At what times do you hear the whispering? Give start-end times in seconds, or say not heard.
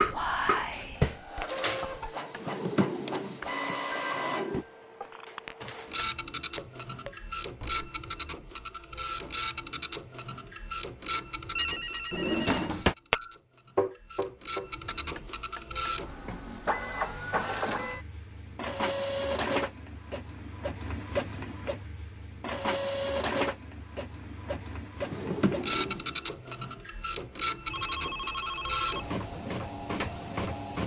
0.0-2.0.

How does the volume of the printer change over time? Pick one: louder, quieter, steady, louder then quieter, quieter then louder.
steady.